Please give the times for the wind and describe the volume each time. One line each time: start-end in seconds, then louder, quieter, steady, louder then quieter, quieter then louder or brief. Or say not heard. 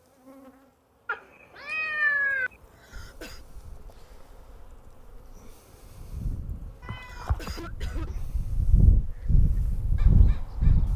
2.9-10.9 louder.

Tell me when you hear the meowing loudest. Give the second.
2 s.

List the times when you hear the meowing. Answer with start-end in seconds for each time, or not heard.
1.1-2.5, 6.8-8.2.